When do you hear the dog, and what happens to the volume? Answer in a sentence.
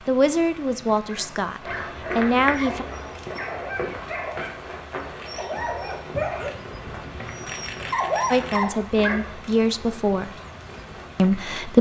You can hear the dog from 1.1 to 9.3 s, getting louder.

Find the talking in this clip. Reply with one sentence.
You can hear the talking from 0.1 to 2.9 s, from 8.3 to 10.3 s and from 11.2 to 11.7 s.